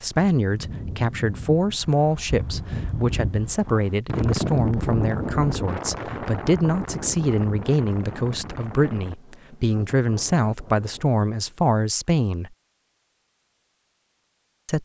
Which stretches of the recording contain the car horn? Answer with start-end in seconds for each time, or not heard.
not heard.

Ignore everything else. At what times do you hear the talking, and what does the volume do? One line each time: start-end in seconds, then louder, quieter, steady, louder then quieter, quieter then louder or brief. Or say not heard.
0.0-12.5 steady.